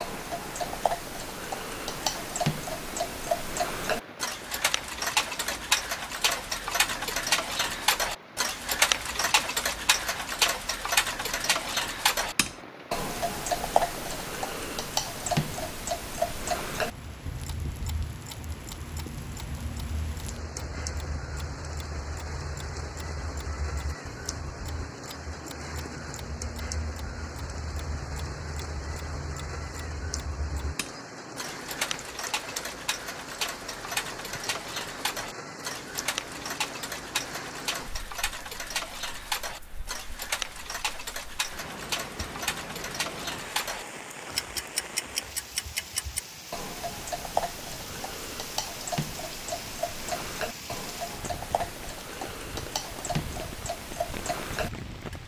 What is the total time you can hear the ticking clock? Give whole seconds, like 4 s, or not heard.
55 s.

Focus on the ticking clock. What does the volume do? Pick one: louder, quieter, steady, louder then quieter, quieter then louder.
quieter then louder.